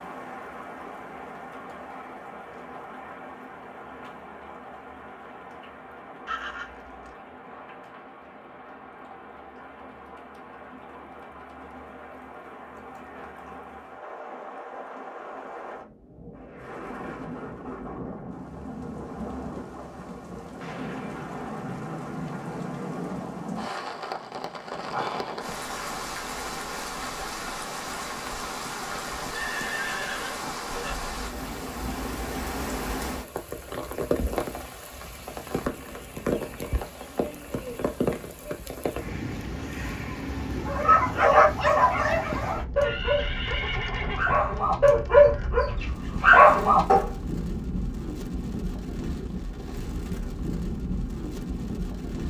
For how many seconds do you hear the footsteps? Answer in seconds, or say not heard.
not heard.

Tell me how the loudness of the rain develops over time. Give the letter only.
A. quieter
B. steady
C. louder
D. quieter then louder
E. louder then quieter
C.